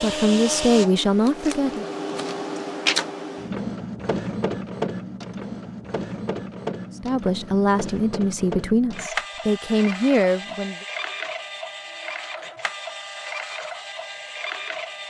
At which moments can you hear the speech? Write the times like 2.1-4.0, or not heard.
0.0-1.9, 7.0-10.8.